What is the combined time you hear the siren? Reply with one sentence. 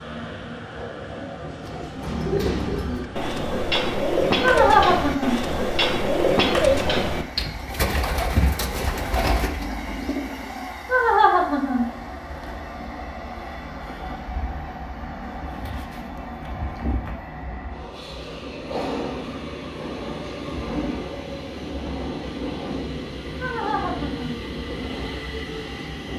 You can't hear the siren here.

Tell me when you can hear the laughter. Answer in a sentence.
You can hear the laughter from 4.4 to 5.4 s, from 10.8 to 11.8 s and from 23.4 to 24.4 s.